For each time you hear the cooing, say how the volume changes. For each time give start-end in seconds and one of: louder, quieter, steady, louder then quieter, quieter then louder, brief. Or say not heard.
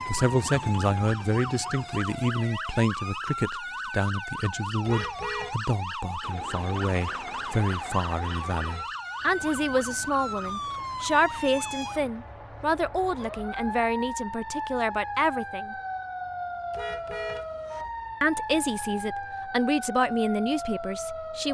not heard.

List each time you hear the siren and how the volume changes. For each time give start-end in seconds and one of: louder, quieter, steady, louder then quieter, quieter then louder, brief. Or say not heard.
0.0-21.4 steady.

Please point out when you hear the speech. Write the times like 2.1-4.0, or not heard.
0.1-15.8, 18.2-21.4.